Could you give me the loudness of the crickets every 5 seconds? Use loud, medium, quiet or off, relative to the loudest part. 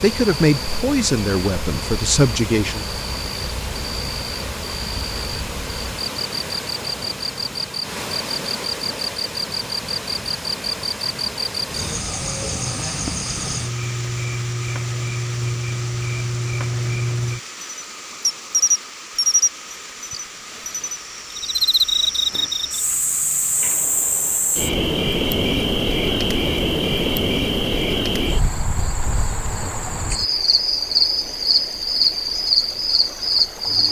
quiet, medium, medium, loud, loud, loud, loud.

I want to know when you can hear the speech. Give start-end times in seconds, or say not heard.
0.0-2.9.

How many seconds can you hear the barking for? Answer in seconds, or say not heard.
not heard.